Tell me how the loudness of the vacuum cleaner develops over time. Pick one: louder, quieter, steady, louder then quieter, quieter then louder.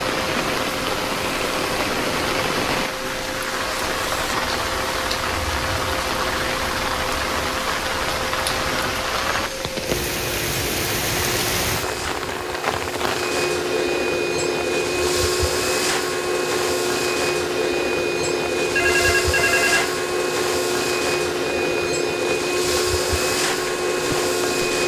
louder.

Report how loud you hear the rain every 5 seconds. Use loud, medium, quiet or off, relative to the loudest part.
loud, loud, loud, medium, medium.